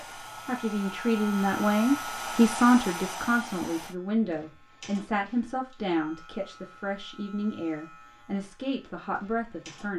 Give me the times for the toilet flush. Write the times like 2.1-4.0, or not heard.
not heard.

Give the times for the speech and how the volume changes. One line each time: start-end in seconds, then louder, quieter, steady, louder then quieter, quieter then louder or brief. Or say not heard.
0.0-9.9 quieter.